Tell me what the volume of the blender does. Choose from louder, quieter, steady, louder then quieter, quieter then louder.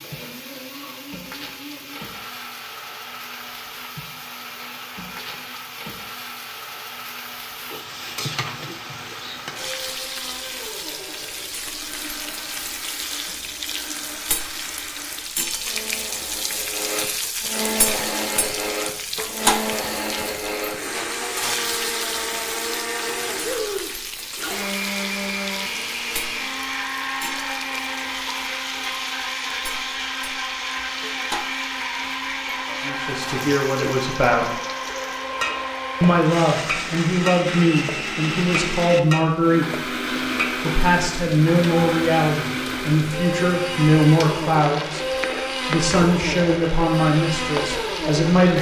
louder.